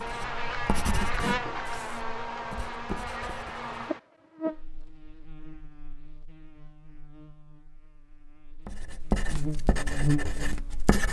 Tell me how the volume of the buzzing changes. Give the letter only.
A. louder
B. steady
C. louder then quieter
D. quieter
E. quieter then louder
E.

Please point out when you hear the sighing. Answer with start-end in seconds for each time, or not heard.
not heard.